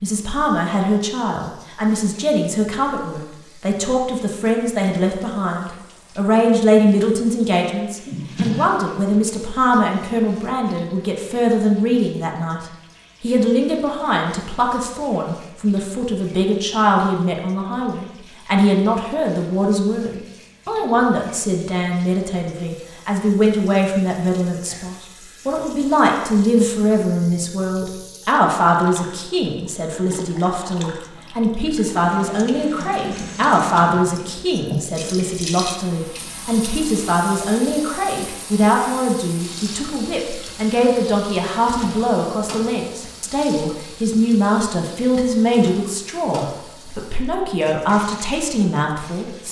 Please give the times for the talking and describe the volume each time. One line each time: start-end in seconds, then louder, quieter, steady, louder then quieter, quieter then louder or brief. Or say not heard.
0.0-49.4 steady.